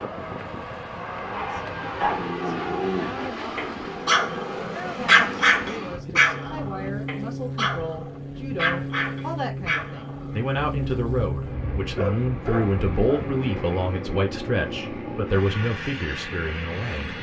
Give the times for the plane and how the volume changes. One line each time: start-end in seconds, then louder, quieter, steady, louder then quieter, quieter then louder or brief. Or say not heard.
0.0-17.1 steady.